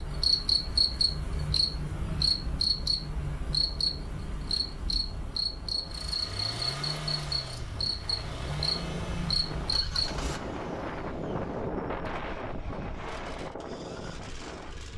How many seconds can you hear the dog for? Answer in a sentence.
You can't hear the dog here.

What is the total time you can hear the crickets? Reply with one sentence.
The crickets can be heard for 10 seconds in total.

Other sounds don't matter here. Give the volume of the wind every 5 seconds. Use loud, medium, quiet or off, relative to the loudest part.
quiet, medium, loud.